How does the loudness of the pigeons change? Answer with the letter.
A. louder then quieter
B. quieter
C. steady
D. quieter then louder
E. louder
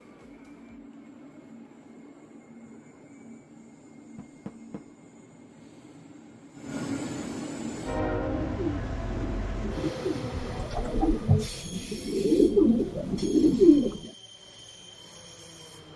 E.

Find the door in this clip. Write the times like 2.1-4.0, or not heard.
4.2-4.8.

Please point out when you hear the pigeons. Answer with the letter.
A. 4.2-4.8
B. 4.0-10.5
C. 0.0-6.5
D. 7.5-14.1
D.